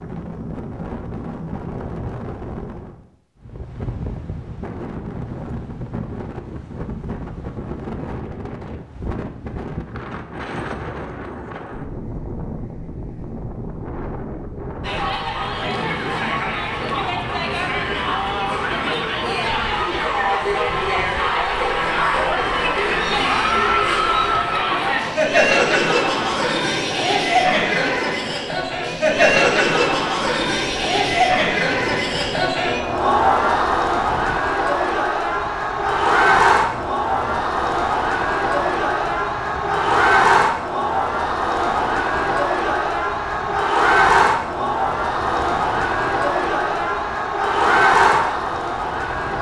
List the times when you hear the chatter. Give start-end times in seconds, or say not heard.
14.8-49.3.